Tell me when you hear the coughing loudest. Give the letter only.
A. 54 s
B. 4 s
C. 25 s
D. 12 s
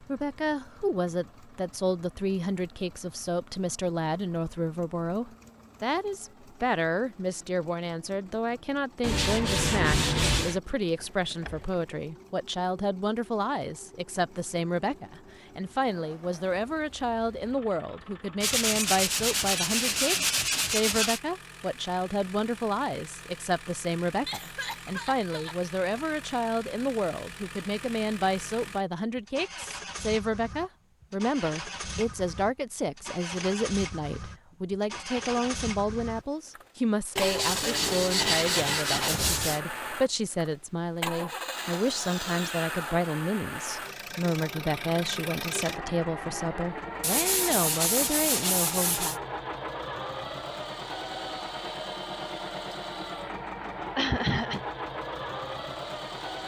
A.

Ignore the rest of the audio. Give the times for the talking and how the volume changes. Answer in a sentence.
The talking can be heard from 0.0 to 49.2 s, at a steady volume.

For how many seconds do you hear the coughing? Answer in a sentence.
The coughing can be heard for 3 seconds in total.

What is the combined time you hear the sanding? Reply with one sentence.
You can hear the sanding for 9 seconds altogether.